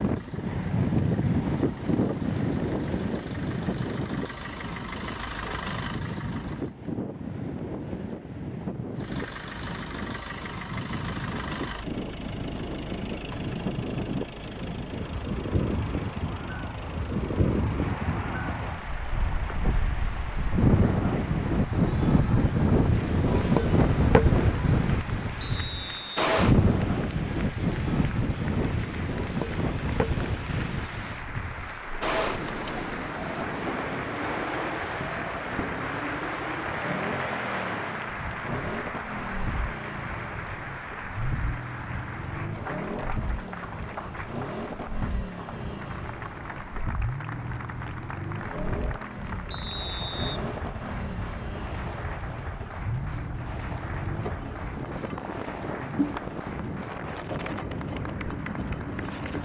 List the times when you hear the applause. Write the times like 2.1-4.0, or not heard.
17.8-59.3.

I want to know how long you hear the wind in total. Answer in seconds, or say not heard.
59 s.